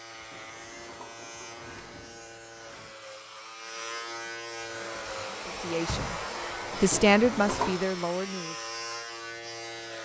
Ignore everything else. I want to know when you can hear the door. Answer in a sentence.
You can hear the door from 0.5 to 3.0 s and from 5.8 to 6.8 s.